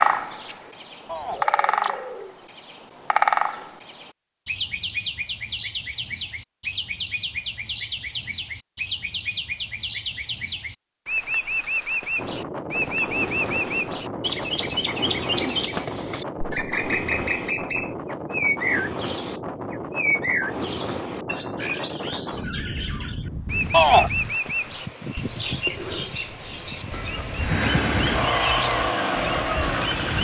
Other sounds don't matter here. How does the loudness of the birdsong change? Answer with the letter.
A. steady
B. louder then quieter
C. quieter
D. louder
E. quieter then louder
A.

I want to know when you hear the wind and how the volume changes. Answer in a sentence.
You can hear the wind from 12.2 to 30.1 s, at a steady volume.